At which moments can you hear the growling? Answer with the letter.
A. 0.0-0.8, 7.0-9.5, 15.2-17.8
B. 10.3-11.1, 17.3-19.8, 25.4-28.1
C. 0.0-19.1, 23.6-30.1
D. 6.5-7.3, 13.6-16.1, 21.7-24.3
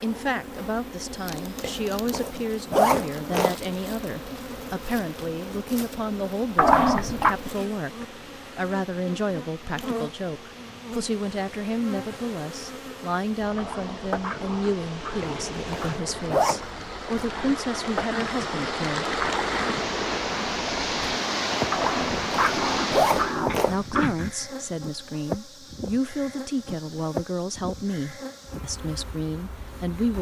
D.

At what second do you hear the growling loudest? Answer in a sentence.
The volume of the growling peaks at 7 seconds.